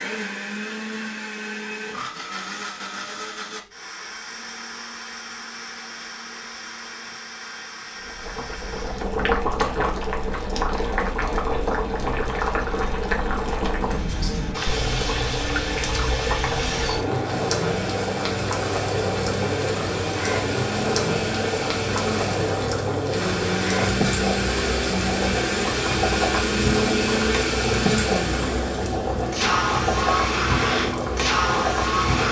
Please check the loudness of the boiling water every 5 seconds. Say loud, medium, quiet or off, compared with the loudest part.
off, loud, loud, loud, loud, loud, loud.